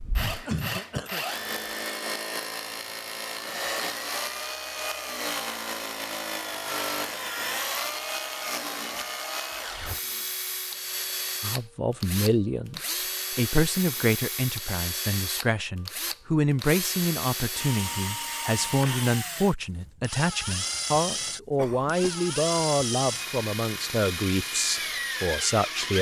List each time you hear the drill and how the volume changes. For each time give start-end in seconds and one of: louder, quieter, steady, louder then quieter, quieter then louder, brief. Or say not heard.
0.0-25.9 steady.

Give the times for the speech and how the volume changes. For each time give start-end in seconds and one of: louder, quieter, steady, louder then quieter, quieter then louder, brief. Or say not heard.
11.4-25.9 steady.